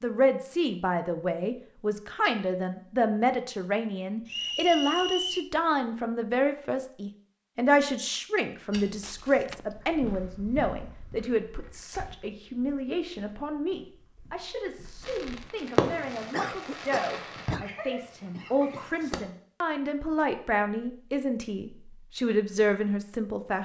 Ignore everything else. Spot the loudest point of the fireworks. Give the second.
16 s.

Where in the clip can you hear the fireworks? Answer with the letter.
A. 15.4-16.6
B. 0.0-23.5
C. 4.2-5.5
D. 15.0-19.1
D.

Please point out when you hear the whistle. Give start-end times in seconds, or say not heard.
4.2-5.5.